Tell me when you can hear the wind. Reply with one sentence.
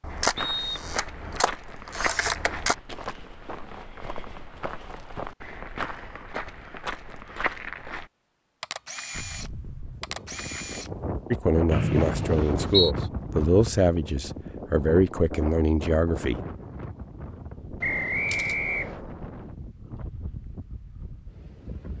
You can hear the wind from 9.1 to 21.9 s.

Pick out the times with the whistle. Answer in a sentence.
The whistle can be heard from 0.3 to 0.9 s, from 11.7 to 12.9 s and from 17.8 to 19.0 s.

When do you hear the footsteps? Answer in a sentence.
The footsteps can be heard from 0.1 to 8.1 s.